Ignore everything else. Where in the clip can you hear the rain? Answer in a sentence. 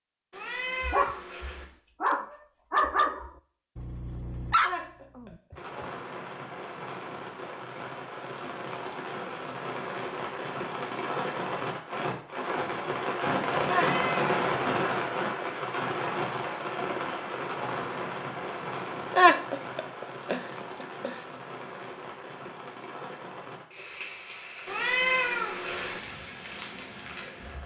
The rain can be heard from 5.5 to 27.6 s.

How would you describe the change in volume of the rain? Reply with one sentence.
The volume of the rain goes up, then down.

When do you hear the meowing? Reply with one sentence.
The meowing can be heard from 0.3 to 1.6 s, from 13.7 to 14.9 s and from 24.6 to 26.0 s.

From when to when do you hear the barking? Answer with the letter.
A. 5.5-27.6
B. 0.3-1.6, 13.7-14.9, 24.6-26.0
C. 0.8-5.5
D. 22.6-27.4
C.